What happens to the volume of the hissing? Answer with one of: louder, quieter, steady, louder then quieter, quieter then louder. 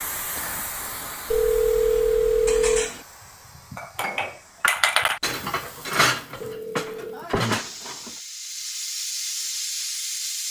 quieter then louder.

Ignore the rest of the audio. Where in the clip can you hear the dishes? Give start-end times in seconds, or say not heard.
1.9-8.2.